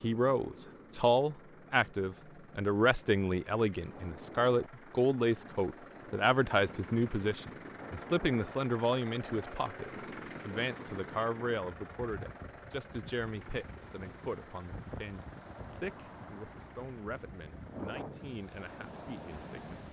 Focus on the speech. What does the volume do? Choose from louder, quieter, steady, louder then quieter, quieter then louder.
quieter.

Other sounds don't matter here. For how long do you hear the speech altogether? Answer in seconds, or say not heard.
20 s.